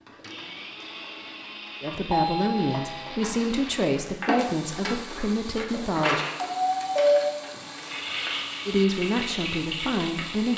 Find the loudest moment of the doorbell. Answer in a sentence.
The loudest moment of the doorbell is at 7 seconds.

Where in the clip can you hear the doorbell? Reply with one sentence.
The doorbell can be heard from 2.1 to 3.3 s and from 6.5 to 7.3 s.